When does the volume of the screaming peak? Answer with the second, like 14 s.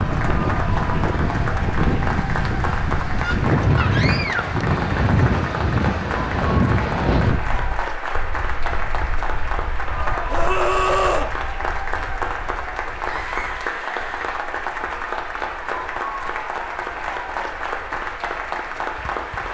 11 s.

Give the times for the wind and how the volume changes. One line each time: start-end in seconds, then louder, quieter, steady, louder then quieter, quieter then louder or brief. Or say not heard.
0.0-19.4 quieter.